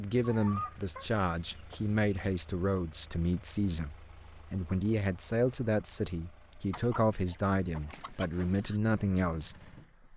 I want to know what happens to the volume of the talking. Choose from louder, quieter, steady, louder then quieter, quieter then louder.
steady.